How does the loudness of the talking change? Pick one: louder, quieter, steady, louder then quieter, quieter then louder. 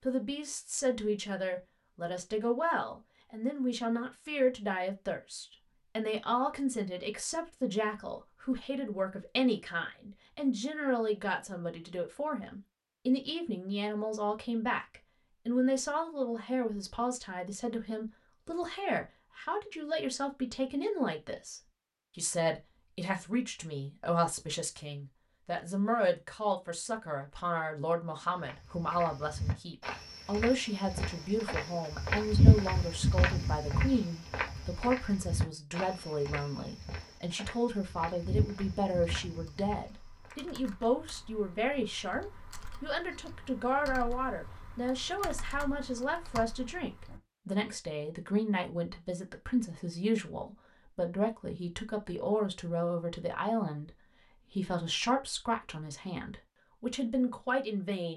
steady.